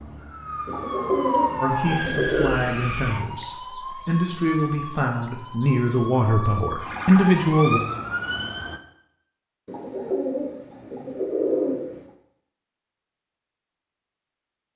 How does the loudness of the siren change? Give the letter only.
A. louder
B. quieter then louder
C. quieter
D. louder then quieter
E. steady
B.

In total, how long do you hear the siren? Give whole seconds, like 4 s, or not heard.
9 s.